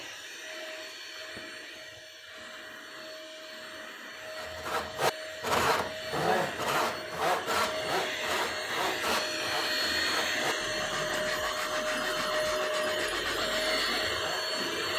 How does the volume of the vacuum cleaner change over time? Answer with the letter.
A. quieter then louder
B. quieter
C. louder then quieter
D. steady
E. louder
E.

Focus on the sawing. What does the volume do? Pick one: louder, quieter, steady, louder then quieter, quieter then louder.
quieter.